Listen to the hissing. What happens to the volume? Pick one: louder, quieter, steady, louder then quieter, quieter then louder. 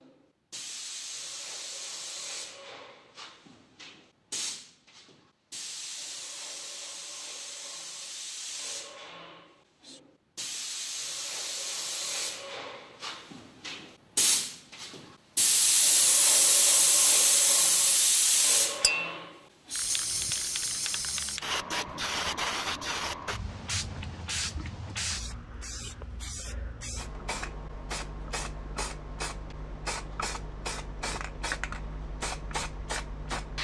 louder then quieter.